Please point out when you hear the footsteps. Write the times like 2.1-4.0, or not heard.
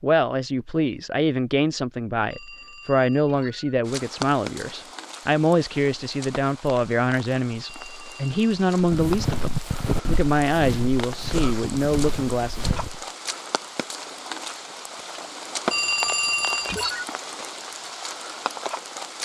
8.8-13.1.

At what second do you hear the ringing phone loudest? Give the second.
16 s.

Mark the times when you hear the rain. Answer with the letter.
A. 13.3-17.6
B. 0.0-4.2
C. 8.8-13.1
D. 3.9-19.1
D.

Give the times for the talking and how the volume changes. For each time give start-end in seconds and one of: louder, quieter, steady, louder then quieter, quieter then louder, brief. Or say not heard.
0.0-12.8 steady.